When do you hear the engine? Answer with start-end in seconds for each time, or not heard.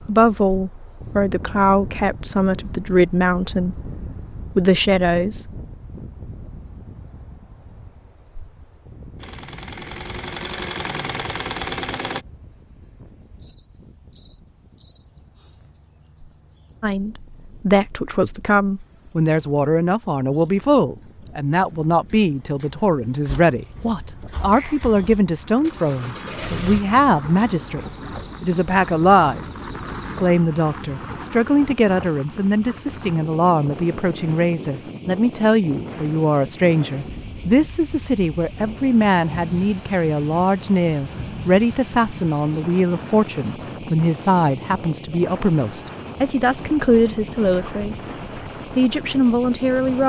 9.2-12.2, 23.2-26.8.